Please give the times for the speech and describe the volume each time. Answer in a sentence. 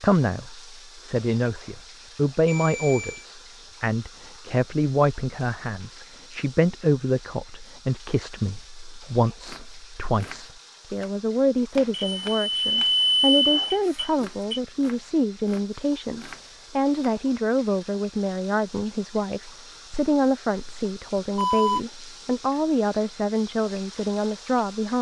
You can hear the speech from 0.0 to 24.9 s, at a steady volume.